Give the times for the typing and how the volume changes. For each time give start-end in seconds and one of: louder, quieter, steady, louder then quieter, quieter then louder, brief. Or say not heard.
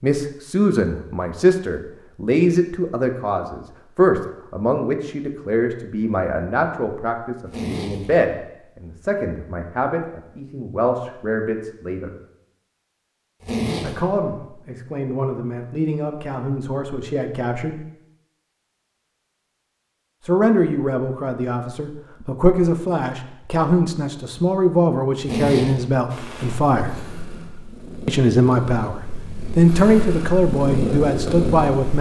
not heard.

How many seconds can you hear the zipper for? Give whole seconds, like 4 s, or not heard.
2 s.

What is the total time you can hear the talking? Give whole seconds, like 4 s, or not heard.
27 s.